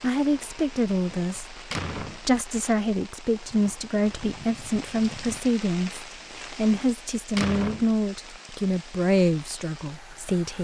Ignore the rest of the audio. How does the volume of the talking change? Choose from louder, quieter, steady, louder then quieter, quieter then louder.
steady.